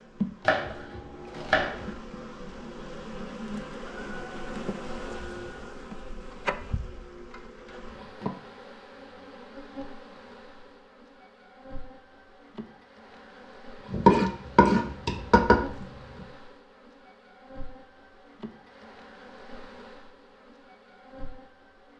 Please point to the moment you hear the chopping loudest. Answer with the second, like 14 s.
14 s.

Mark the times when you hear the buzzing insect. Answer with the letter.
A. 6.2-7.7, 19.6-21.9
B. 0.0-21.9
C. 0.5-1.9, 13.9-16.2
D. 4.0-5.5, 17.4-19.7
B.